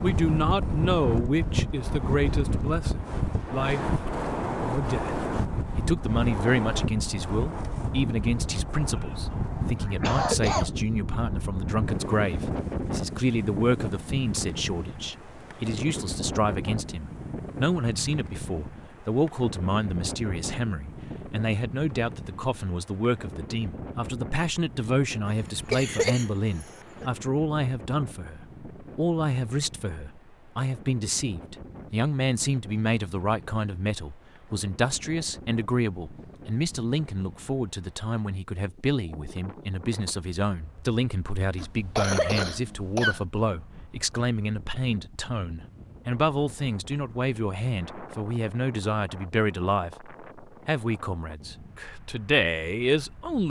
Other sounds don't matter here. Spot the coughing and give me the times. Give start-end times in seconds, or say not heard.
9.0-10.7, 25.2-27.1, 41.5-43.2.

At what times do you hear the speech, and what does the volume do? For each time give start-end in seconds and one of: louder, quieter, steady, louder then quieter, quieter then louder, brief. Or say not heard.
0.0-4.0 quieter
4.6-53.4 steady.